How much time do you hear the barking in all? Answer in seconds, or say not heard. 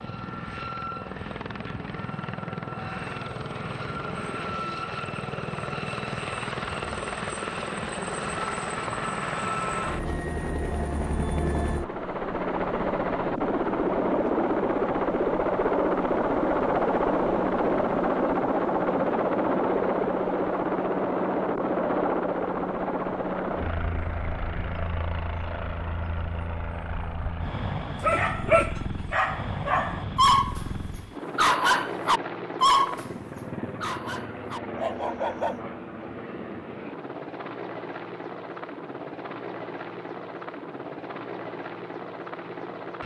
6 s.